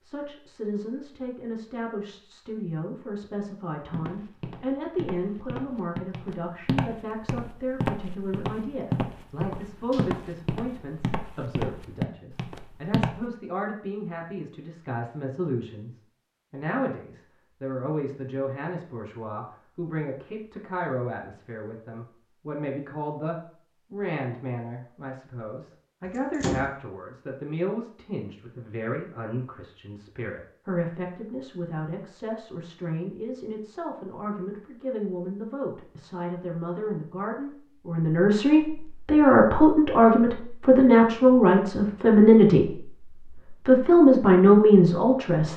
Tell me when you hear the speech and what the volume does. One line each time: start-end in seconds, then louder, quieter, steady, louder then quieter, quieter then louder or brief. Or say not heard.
0.0-45.5 louder.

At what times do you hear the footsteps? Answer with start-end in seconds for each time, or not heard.
3.9-13.2.